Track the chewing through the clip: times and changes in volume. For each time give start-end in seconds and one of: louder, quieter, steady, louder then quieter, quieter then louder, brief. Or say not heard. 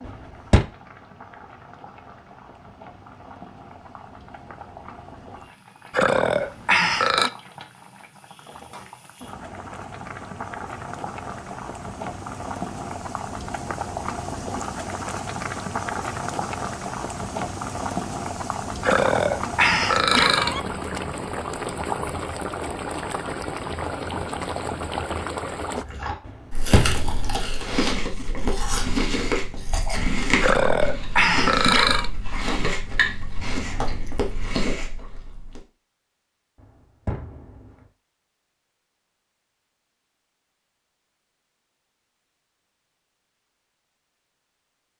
25.8-35.6 steady.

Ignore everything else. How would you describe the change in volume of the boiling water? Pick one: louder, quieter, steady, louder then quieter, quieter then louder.
louder.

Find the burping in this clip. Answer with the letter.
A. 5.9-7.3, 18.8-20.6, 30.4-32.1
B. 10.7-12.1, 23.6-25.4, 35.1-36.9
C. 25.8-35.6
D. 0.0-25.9
A.